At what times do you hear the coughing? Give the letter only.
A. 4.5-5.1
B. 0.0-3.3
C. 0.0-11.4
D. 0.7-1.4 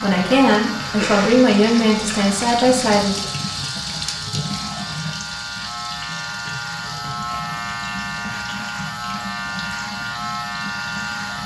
D.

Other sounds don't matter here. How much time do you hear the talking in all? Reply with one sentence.
You can hear the talking for 3 seconds altogether.